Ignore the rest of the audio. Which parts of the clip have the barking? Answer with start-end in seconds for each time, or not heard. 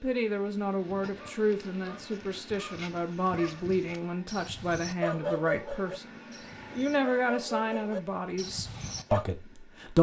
0.8-9.2.